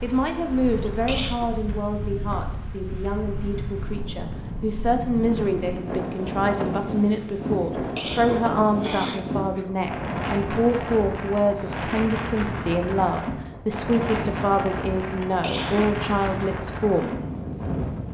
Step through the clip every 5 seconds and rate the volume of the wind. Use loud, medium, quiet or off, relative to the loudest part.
medium, loud, loud, loud.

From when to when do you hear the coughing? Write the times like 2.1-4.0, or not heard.
0.8-1.5, 7.8-9.7, 15.2-15.9.